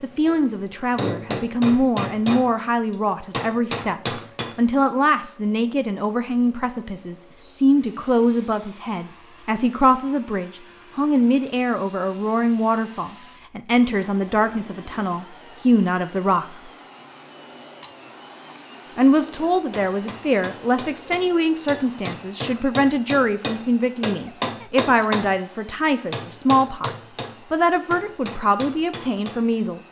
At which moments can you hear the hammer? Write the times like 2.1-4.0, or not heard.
0.2-2.5, 3.3-4.5, 19.4-29.4.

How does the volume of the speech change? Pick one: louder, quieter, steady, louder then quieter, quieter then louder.
steady.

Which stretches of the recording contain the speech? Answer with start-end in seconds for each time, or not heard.
0.0-16.7, 18.9-29.8.